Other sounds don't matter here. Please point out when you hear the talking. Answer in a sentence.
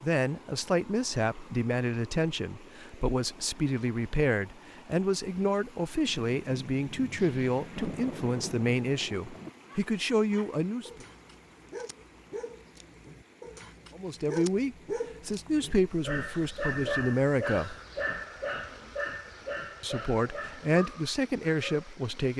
You can hear the talking from 0.0 to 11.1 s, from 13.9 to 17.8 s and from 19.8 to 22.3 s.